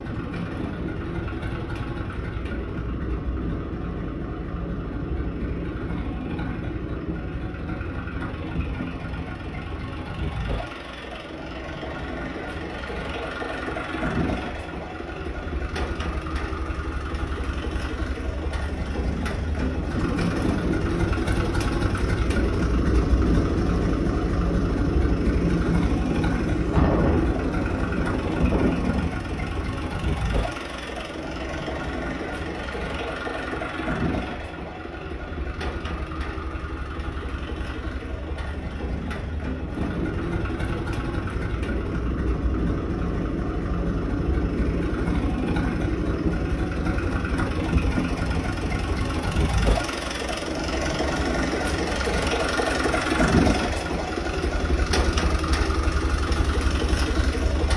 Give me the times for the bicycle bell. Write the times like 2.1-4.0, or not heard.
not heard.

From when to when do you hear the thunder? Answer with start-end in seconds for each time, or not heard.
25.4-29.1.